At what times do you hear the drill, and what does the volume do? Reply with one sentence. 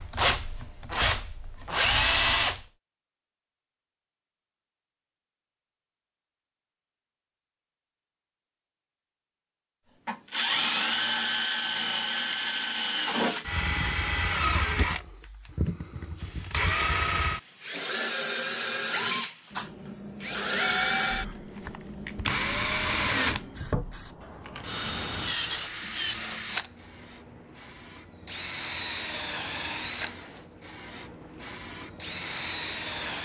The drill can be heard briefly from 0.0 to 2.6 s; and from 10.1 to 33.2 s, getting quieter.